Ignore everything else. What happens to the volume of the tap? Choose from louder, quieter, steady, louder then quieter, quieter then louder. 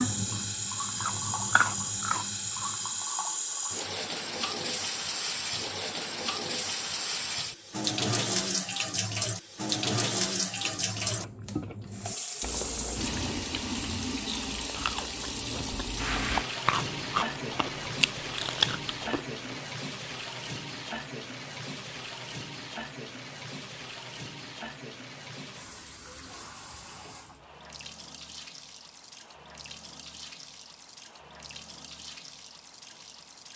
quieter.